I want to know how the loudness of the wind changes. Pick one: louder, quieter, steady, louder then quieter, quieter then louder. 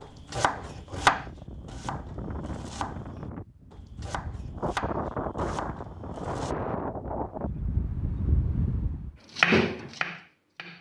louder.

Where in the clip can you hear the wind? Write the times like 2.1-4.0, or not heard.
0.0-9.1.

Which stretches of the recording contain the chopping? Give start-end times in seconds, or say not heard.
0.0-6.5, 9.3-10.7.